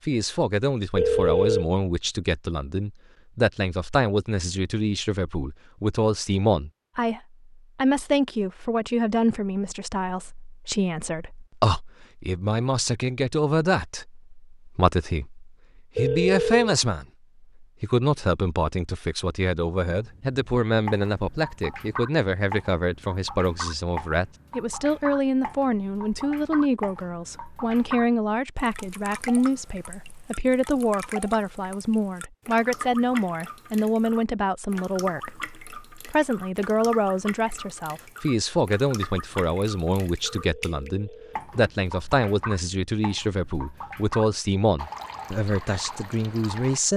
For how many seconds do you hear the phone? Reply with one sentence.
The phone can be heard for 3 seconds in total.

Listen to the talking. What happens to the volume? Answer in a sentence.
The loudness of the talking stays about the same.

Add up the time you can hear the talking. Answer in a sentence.
You can hear the talking for 47 seconds altogether.